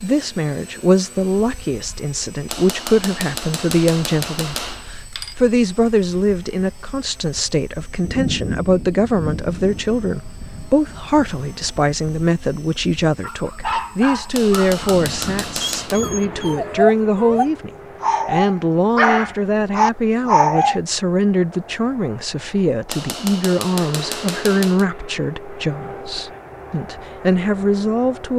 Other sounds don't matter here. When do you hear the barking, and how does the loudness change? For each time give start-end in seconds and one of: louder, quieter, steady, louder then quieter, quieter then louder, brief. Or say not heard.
13.2-20.8 quieter then louder.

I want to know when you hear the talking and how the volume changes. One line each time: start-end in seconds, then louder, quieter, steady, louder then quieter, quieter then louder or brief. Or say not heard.
0.0-28.3 steady.